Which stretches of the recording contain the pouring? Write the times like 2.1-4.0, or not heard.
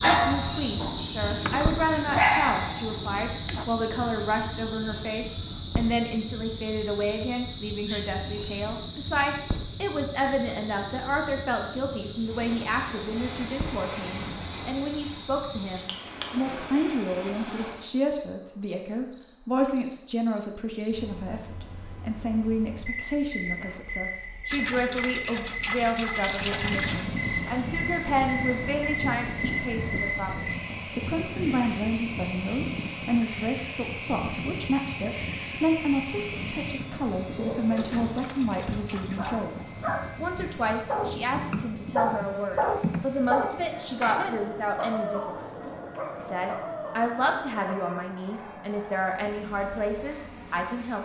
1.2-2.3, 24.5-27.1, 37.8-39.4.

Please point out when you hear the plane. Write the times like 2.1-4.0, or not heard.
12.2-17.9, 26.2-50.9.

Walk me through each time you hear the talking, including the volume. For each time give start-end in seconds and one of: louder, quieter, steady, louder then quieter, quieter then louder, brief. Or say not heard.
0.0-50.9 steady.